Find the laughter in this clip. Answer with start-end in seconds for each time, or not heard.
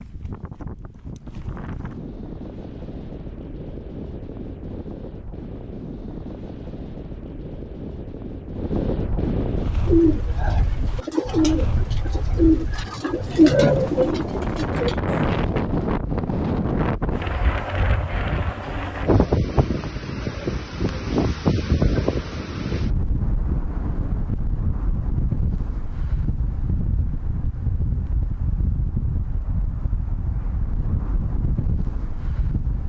not heard.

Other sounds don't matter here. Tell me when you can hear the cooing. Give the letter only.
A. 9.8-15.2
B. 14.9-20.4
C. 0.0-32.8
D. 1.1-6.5
A.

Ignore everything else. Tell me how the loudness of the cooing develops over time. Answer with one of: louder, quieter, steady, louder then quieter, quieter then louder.
louder then quieter.